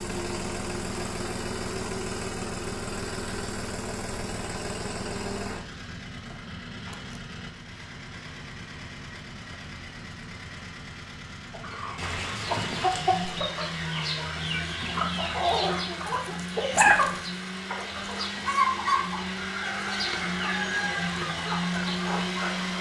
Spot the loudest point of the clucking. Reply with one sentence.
The loudest moment of the clucking is at 17 seconds.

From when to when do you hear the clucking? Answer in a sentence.
You can hear the clucking from 11.5 to 22.7 s.